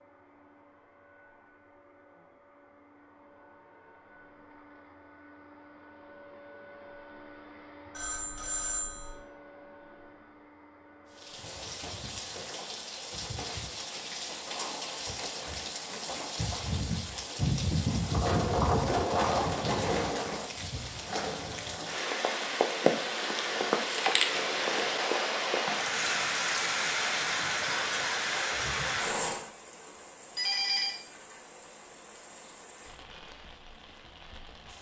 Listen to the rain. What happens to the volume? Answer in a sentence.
The loudness of the rain goes up, then down.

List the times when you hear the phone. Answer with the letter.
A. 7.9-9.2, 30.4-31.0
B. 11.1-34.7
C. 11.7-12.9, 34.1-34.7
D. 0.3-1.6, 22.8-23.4
A.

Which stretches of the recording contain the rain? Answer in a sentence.
You can hear the rain from 11.1 to 34.7 s.